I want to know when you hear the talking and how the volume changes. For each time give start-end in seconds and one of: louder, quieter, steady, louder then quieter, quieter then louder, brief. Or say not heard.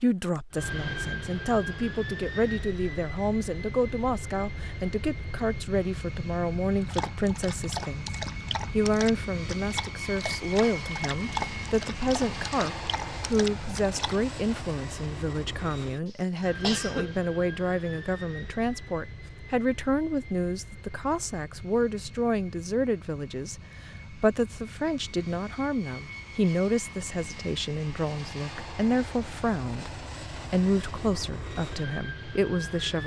0.0-8.1 steady
8.7-33.0 steady.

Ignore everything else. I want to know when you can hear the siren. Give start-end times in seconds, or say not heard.
not heard.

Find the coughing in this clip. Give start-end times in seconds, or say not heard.
16.1-17.1.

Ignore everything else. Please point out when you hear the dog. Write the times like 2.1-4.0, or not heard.
6.8-14.3.